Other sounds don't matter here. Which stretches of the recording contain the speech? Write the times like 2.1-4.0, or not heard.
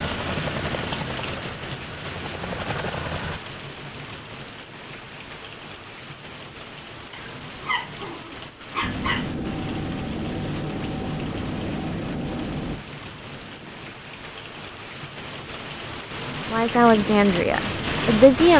16.5-18.5.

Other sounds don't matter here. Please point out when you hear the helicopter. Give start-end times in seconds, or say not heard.
0.0-3.4, 8.8-13.9, 16.9-18.5.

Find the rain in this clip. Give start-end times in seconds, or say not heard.
0.0-18.5.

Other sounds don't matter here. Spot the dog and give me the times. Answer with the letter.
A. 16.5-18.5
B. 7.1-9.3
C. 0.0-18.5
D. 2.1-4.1
B.